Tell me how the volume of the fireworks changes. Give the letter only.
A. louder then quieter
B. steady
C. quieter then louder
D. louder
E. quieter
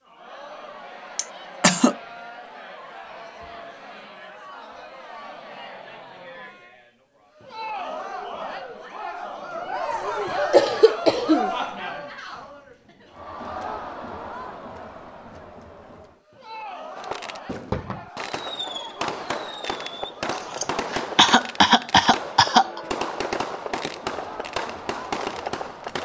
B.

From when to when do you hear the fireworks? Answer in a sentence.
The fireworks can be heard from 16.9 to 26.0 s.